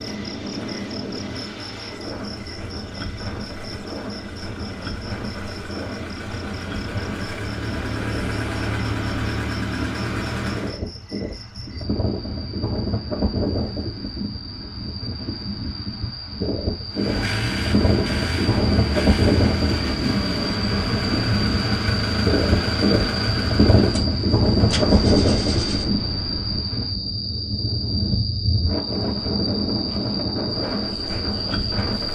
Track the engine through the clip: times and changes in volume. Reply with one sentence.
You can hear the engine from 0.0 to 10.8 s, getting louder; and from 16.9 to 26.4 s, getting quieter.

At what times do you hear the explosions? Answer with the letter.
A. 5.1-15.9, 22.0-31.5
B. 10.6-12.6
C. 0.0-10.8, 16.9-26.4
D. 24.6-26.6
D.